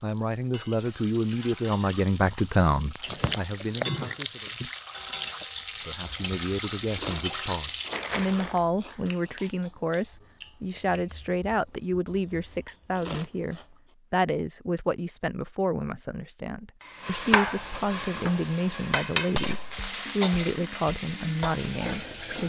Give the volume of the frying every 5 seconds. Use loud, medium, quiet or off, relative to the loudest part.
medium, loud, off, loud, loud.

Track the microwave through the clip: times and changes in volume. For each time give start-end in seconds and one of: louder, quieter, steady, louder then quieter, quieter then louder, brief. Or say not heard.
not heard.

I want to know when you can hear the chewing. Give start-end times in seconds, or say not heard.
3.0-13.7.